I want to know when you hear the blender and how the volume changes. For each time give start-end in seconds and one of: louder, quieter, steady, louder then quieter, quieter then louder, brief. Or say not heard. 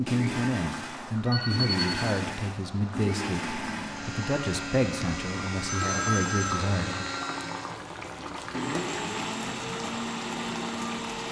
0.1-11.2 steady.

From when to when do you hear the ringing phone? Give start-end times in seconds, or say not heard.
1.2-1.9, 5.7-6.6.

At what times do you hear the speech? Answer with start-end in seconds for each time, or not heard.
0.0-7.0.